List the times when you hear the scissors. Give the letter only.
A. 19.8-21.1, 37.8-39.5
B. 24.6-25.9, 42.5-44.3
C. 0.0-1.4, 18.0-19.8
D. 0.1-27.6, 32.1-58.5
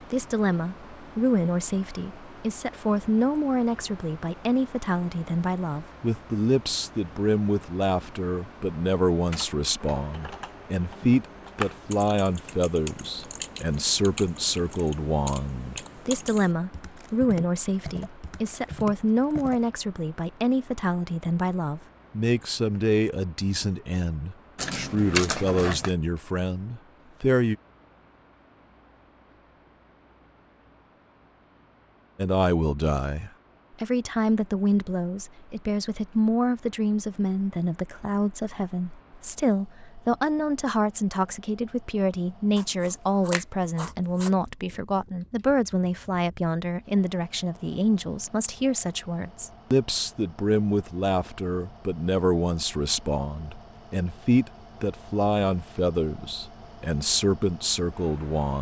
B.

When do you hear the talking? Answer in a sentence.
You can hear the talking from 0.1 to 27.6 s and from 32.1 to 58.5 s.